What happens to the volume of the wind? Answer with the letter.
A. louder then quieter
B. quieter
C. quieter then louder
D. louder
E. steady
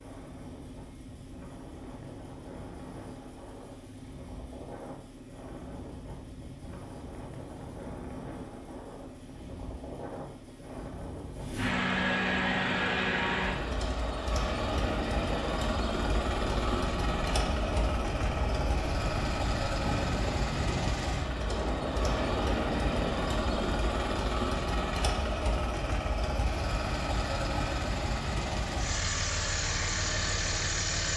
D.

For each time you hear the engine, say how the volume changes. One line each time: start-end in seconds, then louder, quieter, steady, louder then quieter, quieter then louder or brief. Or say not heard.
0.0-31.1 louder.